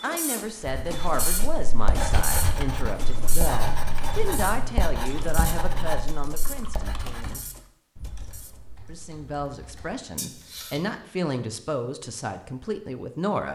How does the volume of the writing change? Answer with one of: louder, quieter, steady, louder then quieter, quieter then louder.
steady.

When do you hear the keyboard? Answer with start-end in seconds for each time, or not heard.
1.9-11.1.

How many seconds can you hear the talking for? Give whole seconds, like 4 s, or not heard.
12 s.